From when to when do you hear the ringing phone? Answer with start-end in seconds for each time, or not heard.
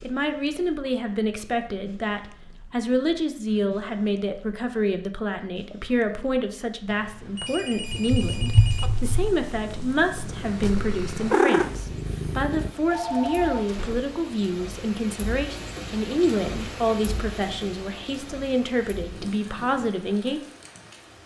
6.8-8.9, 12.9-14.1.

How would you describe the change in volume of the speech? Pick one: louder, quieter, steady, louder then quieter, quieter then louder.
steady.